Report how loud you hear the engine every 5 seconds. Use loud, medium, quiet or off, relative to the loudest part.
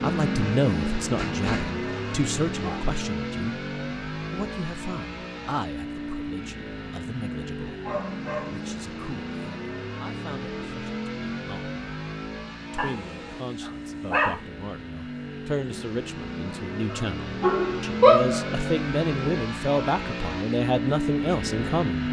loud, medium, medium, loud, loud.